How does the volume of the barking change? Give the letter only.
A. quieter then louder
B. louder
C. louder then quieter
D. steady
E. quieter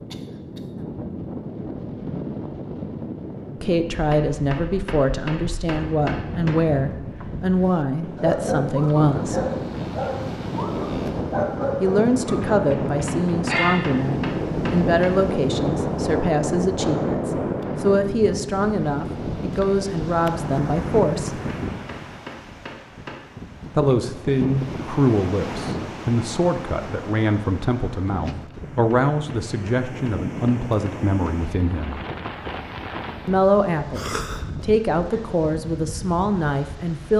D.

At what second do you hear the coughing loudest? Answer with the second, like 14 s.
34 s.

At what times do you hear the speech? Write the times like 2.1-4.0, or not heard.
3.6-9.4, 11.8-21.4, 23.8-31.9, 33.2-37.1.